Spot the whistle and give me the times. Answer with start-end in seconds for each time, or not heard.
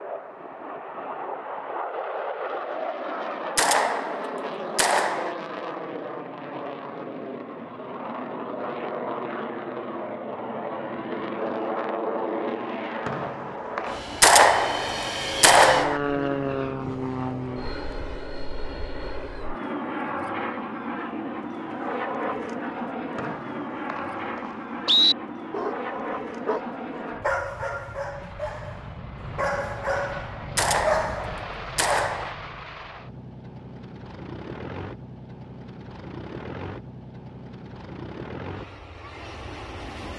13.1-13.9, 23.1-25.1.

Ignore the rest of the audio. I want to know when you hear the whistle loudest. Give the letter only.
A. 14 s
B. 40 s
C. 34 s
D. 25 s
D.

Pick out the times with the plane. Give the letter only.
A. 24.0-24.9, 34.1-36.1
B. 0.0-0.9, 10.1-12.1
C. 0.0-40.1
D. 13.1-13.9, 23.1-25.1
C.